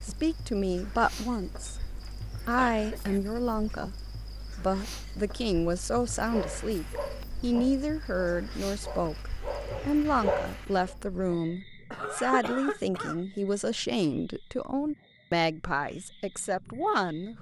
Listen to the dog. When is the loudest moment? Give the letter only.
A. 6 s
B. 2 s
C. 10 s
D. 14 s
C.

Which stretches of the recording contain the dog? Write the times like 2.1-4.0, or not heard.
6.2-10.9.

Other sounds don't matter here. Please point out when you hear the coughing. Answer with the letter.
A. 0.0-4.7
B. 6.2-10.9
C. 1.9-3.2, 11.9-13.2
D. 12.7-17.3
C.